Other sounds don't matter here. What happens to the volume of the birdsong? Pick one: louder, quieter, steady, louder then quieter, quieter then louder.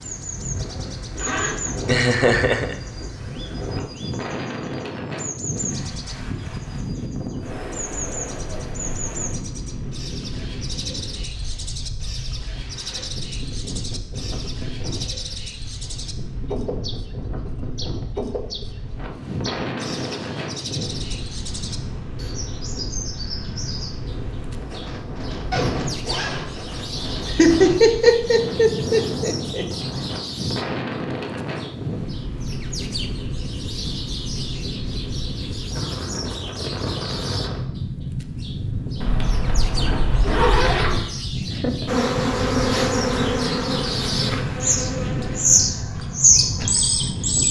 louder.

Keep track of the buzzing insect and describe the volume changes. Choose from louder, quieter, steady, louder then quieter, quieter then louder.
quieter.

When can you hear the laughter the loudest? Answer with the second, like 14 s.
28 s.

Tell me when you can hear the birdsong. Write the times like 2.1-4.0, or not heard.
0.0-47.4.